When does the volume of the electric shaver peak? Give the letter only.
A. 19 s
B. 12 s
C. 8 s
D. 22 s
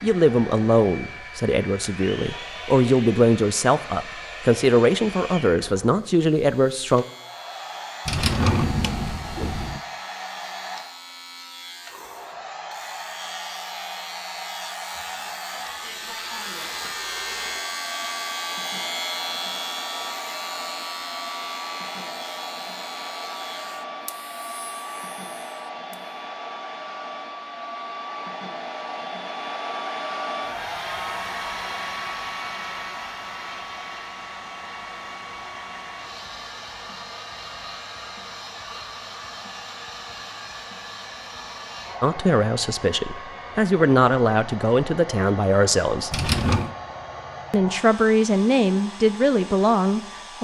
A.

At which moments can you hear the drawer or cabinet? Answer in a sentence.
You can hear the drawer or cabinet from 8.1 to 9.8 s and from 46.1 to 46.7 s.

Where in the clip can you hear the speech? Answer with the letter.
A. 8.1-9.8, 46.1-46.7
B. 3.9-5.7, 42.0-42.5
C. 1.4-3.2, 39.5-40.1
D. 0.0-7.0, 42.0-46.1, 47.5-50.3
D.